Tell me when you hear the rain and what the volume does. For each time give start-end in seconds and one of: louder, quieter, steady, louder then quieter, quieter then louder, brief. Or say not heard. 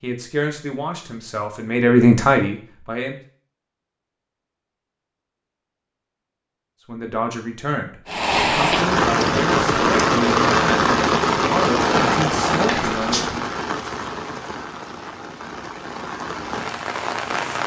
8.1-17.6 quieter.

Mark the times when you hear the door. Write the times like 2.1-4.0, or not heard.
12.7-13.3.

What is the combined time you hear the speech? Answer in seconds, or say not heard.
10 s.